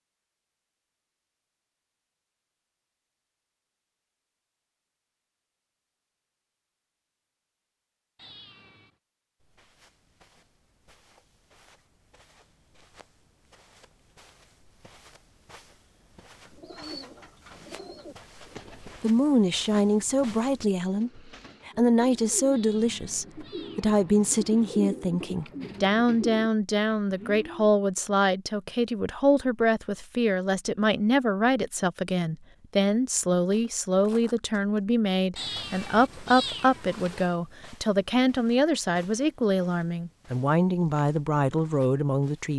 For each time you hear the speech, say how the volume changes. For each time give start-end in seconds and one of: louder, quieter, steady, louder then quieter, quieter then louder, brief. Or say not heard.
18.8-42.5 steady.